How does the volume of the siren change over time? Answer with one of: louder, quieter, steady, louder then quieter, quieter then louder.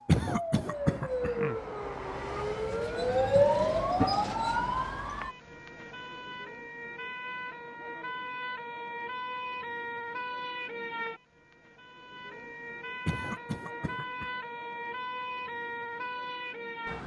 quieter.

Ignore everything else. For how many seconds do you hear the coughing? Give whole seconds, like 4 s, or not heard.
3 s.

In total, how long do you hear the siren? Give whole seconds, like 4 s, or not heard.
17 s.